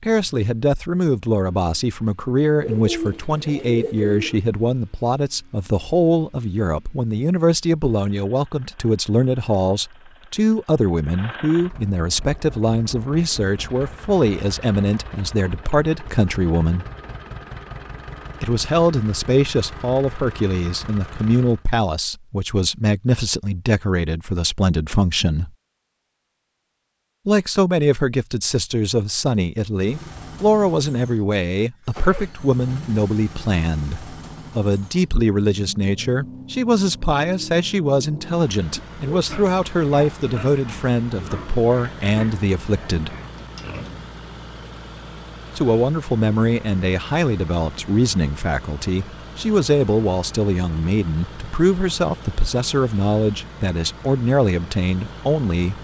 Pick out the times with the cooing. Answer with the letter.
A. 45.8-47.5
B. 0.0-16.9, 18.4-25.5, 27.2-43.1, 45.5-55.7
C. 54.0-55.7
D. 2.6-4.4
D.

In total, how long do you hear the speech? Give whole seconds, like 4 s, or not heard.
50 s.